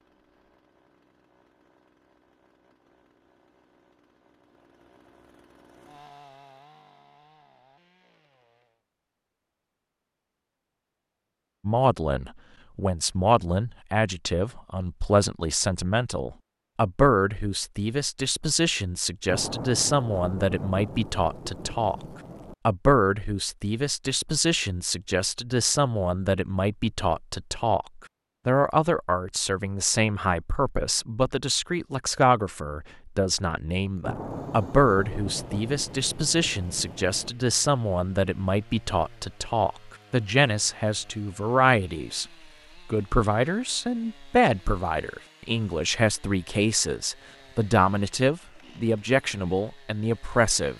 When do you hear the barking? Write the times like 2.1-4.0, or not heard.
not heard.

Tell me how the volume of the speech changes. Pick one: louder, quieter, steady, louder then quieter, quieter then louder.
steady.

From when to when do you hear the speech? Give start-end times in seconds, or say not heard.
11.7-21.9, 22.6-42.2, 42.9-50.7.